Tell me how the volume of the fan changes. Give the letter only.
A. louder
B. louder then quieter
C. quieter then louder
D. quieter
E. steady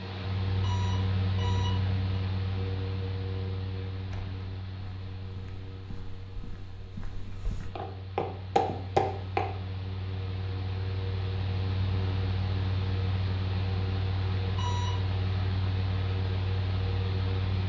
C.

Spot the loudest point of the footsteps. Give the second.
9 s.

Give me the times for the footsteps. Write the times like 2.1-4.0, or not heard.
3.9-9.4.